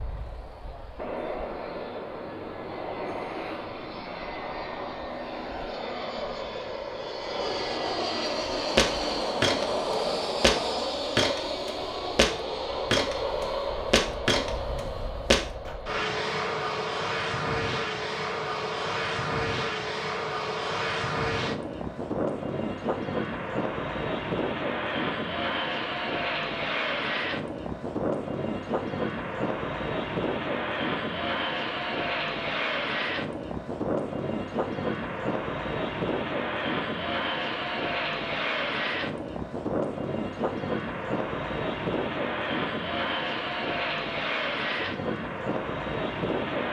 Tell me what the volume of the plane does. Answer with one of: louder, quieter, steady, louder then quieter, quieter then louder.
steady.